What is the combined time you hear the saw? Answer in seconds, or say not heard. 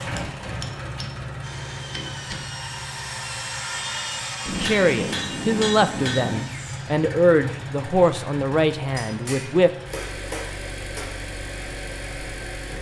6 s.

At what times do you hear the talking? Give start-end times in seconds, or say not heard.
4.6-9.7.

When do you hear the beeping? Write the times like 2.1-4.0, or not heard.
not heard.